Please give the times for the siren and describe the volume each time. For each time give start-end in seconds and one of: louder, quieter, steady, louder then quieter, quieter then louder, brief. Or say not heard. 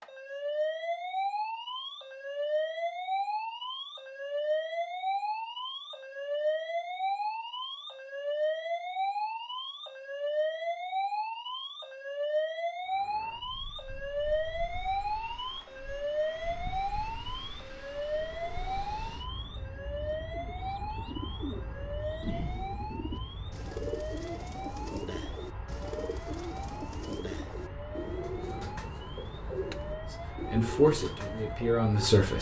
0.0-32.1 quieter.